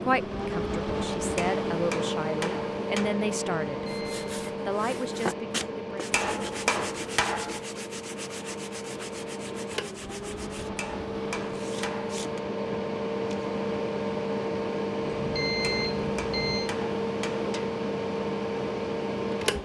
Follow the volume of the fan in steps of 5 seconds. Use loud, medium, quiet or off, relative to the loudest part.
loud, medium, loud, loud.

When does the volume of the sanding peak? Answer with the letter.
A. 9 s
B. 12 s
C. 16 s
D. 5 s
D.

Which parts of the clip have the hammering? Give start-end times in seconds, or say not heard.
1.4-3.1, 6.1-7.7, 10.8-12.4, 15.6-17.7.